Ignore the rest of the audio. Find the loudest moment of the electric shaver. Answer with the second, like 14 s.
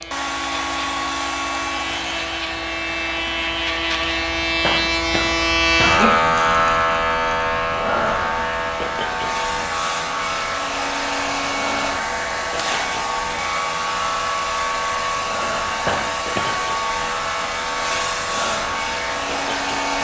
6 s.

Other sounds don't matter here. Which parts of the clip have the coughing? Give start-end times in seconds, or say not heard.
4.6-6.2, 15.8-16.7.